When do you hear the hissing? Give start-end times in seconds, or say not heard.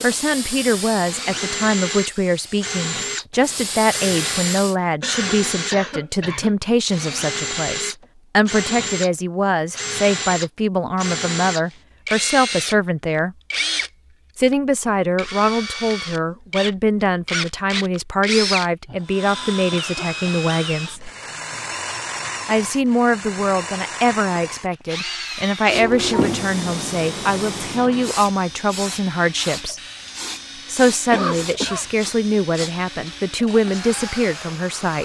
0.0-4.8, 25.6-35.0.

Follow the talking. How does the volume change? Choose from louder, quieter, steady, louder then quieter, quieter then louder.
steady.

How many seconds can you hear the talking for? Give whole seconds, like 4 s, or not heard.
32 s.